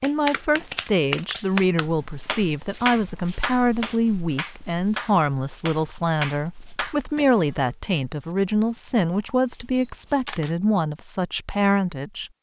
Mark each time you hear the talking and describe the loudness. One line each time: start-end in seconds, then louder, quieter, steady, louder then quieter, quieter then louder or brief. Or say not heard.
0.0-12.3 steady.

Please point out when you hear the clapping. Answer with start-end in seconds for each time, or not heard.
0.0-7.2.